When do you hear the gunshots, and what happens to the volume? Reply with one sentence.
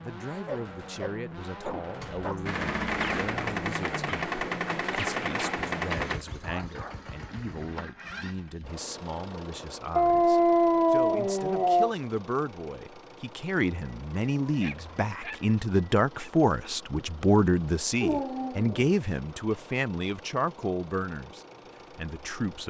You can hear the gunshots from 2.0 to 6.2 s, at a steady volume.